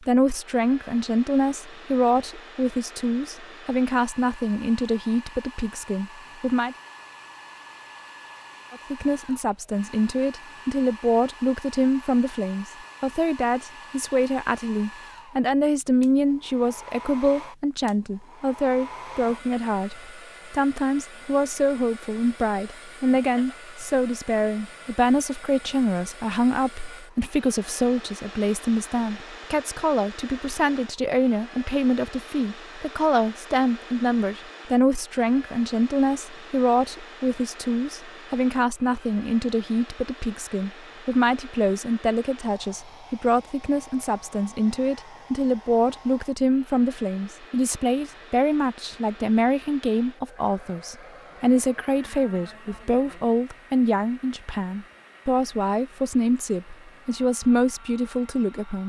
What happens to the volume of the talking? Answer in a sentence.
The loudness of the talking stays about the same.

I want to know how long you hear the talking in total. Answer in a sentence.
You can hear the talking for 57 seconds altogether.